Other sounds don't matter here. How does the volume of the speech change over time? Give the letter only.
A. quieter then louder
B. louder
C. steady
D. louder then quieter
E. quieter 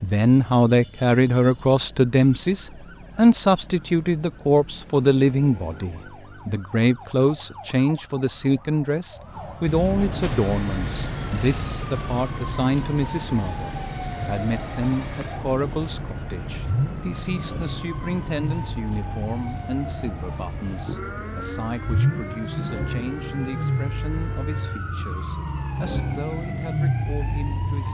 E.